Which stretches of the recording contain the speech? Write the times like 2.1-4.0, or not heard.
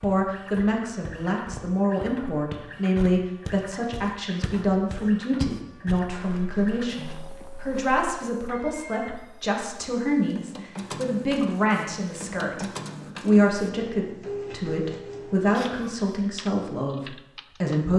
0.0-17.9.